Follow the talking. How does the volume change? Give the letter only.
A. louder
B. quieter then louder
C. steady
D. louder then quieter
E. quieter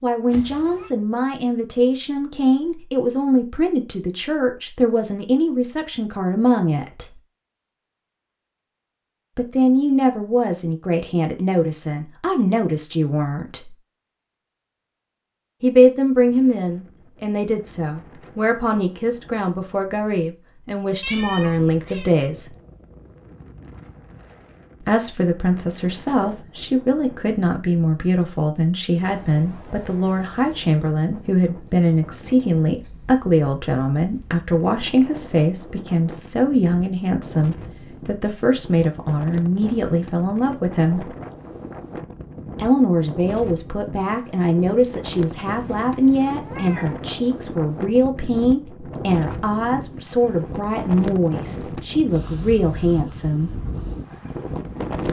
C.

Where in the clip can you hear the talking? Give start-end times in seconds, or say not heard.
0.0-7.2, 9.3-13.8, 15.6-22.6, 24.8-41.1, 42.5-53.5.